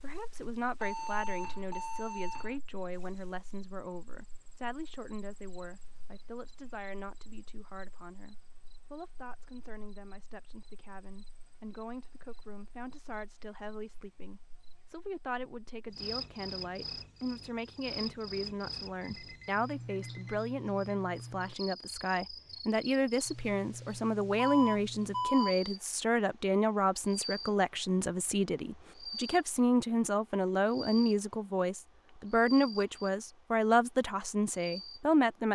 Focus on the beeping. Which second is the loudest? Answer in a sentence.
The volume of the beeping peaks at 25 seconds.